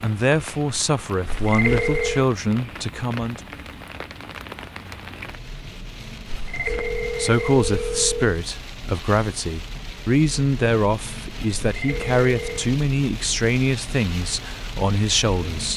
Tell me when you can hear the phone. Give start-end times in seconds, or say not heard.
1.2-2.2, 6.2-8.3, 11.6-12.8.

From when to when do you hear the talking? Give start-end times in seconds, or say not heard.
0.0-3.4, 7.2-15.7.